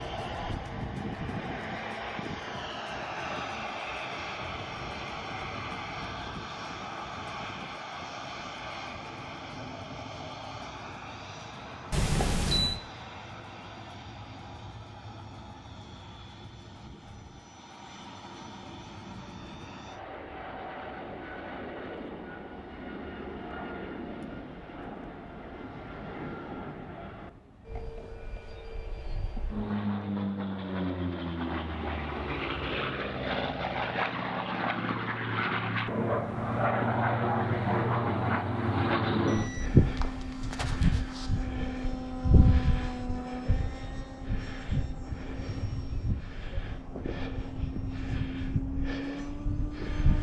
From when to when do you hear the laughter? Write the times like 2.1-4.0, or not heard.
not heard.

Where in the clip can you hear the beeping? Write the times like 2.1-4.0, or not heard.
11.9-12.8, 39.2-41.3.